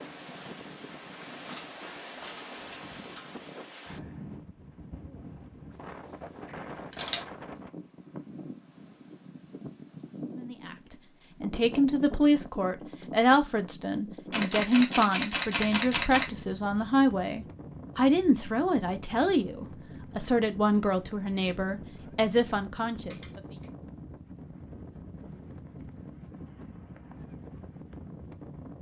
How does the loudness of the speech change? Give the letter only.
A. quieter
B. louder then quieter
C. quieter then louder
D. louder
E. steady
E.